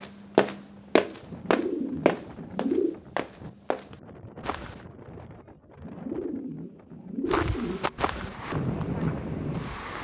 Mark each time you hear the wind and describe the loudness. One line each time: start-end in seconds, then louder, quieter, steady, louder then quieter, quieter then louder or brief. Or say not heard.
0.0-9.9 louder.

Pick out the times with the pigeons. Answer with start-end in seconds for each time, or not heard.
1.3-3.0, 5.8-8.4.